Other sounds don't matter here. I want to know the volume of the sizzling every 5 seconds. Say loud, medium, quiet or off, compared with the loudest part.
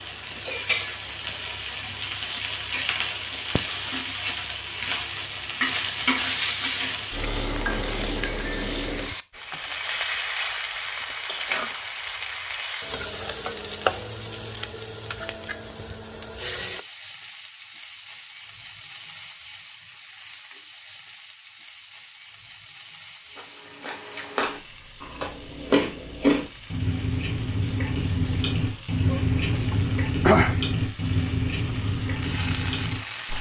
loud, loud, loud, medium, quiet, quiet, loud.